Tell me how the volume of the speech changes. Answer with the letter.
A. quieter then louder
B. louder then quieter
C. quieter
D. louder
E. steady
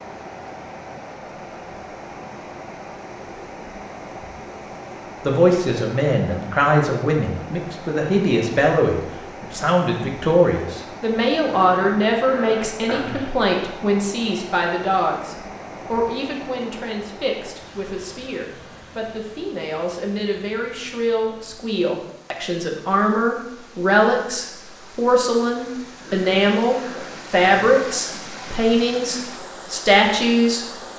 A.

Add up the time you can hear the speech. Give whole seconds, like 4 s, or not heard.
26 s.